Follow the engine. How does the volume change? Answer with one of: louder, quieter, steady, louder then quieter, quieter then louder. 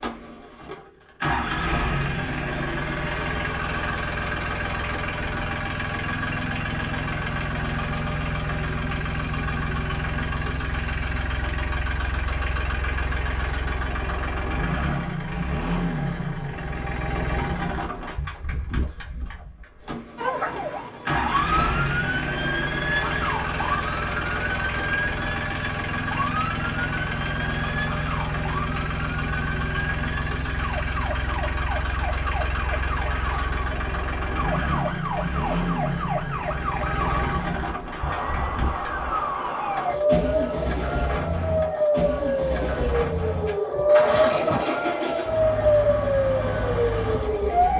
steady.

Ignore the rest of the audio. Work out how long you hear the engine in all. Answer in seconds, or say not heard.
48 s.